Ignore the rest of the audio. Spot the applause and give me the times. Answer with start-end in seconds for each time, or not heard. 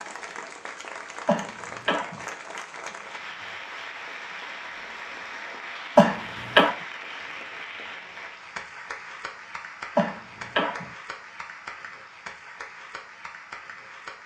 0.0-14.2.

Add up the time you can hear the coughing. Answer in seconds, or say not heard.
3 s.